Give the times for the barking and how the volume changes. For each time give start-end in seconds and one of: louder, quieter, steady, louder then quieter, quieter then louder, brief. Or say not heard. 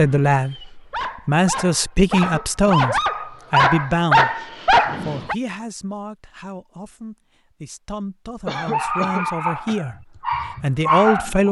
0.0-5.3 louder
8.7-11.4 brief.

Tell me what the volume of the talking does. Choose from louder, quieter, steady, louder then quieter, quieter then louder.
quieter then louder.